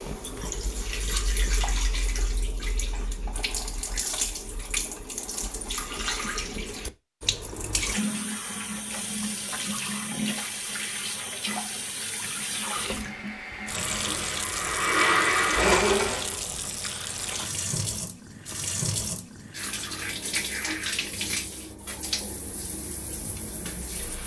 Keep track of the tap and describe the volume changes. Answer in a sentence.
The volume of the tap stays about the same.